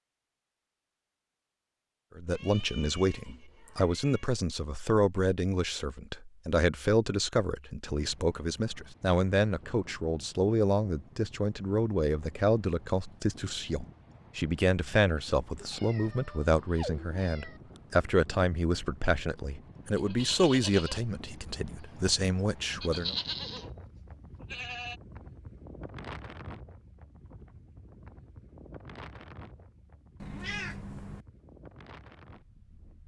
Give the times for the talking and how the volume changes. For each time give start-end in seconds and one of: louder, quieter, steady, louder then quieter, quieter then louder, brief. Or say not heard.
2.1-23.1 steady.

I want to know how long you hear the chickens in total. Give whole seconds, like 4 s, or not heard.
not heard.